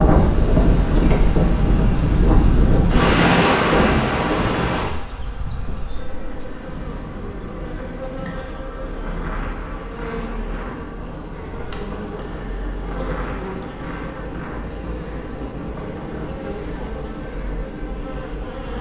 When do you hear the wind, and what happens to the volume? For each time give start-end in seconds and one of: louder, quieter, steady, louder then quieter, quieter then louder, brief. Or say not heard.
0.0-18.7 quieter.